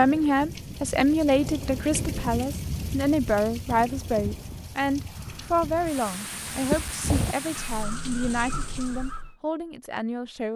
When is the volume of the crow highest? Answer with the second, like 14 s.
7 s.